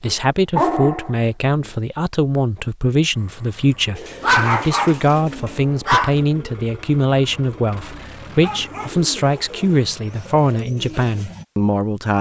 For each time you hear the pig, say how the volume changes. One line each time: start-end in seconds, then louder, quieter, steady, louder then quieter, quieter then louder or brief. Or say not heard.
not heard.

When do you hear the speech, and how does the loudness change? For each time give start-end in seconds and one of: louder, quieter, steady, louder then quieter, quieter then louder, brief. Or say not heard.
0.0-12.1 steady.